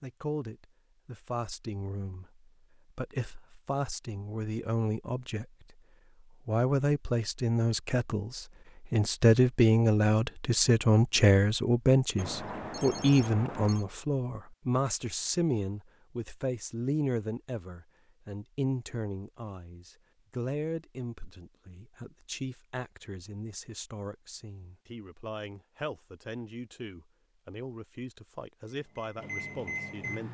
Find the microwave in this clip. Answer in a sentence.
The microwave can be heard from 28.6 to 30.2 s.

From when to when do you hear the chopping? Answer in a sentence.
You can't hear the chopping here.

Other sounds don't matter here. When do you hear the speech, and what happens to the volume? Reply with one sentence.
You can hear the speech from 0.0 to 30.2 s, getting louder then quieter.